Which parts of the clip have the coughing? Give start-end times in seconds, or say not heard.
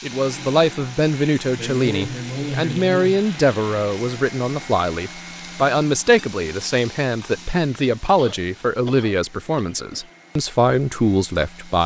1.6-3.2, 8.2-10.1.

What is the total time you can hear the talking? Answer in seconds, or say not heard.
12 s.